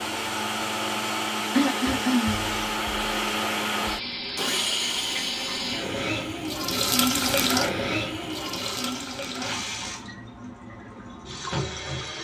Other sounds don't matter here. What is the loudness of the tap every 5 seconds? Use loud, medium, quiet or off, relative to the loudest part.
medium, loud, medium.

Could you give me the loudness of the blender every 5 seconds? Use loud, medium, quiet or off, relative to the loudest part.
loud, medium, off.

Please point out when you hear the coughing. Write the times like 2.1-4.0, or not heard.
1.6-2.5.